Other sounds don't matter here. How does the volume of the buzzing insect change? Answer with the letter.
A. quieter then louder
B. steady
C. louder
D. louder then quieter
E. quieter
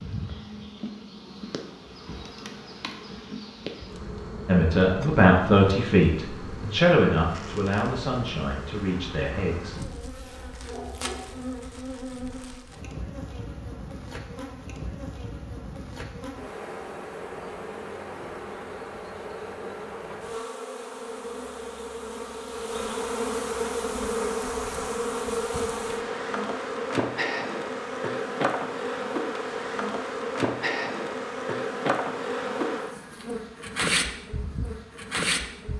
C.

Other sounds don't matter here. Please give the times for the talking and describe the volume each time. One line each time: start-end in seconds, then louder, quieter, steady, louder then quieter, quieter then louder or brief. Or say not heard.
4.5-9.8 quieter.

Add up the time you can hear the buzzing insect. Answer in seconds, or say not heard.
36 s.